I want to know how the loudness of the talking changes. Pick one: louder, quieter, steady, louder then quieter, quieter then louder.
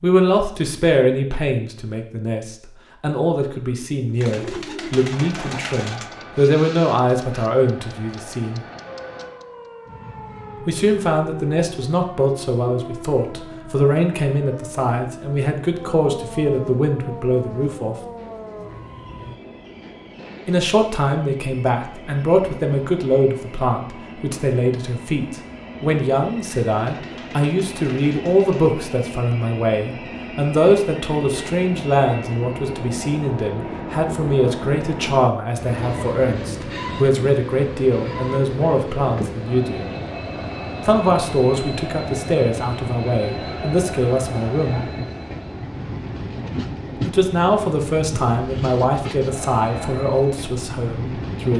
steady.